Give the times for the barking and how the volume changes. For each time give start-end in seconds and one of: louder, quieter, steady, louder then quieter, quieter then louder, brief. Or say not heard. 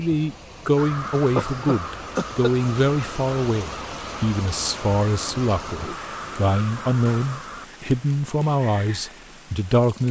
not heard.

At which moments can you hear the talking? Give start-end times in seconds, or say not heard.
0.0-10.0.